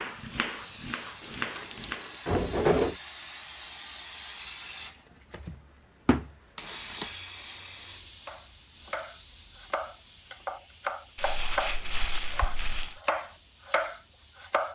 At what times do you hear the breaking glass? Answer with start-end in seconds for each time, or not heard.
not heard.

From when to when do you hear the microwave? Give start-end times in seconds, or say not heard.
not heard.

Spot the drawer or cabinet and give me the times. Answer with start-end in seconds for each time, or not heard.
2.2-3.0.